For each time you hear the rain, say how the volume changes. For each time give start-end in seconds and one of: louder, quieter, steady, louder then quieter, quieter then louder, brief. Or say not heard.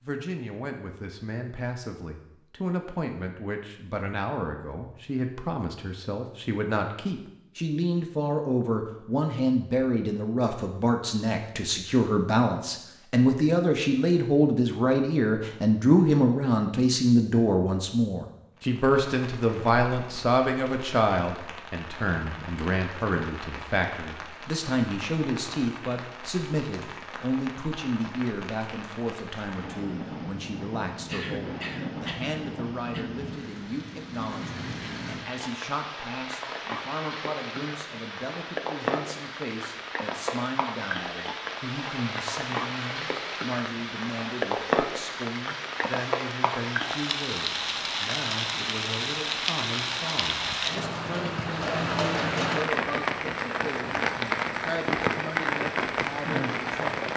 18.6-57.1 louder.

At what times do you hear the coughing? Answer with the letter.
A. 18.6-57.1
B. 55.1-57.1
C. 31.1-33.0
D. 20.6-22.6
C.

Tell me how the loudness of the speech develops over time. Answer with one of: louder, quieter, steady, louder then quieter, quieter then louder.
louder then quieter.